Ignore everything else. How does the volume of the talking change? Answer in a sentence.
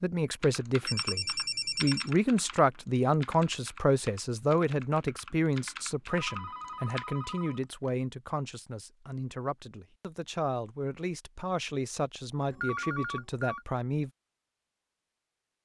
The volume of the talking goes down.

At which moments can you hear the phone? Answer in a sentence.
The phone can be heard from 0.8 to 2.1 s, from 6.0 to 7.9 s and from 12.5 to 13.7 s.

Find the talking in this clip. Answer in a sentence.
You can hear the talking from 0.0 to 14.1 s.